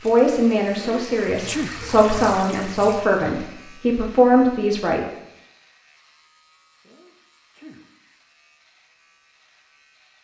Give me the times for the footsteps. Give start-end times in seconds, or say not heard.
not heard.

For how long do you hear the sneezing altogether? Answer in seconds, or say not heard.
2 s.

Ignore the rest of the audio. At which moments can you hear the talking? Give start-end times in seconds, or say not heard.
0.0-5.0.